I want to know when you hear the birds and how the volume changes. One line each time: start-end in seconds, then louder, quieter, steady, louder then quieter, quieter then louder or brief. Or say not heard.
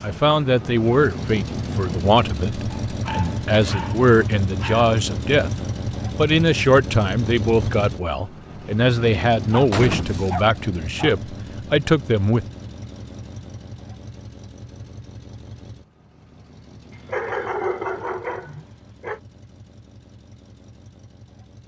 not heard.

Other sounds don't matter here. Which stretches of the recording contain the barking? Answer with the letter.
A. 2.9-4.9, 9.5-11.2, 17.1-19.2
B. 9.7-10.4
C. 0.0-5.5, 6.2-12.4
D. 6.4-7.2
A.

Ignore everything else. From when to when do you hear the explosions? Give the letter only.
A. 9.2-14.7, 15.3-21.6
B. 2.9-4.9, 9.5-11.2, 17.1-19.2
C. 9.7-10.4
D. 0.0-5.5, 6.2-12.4
C.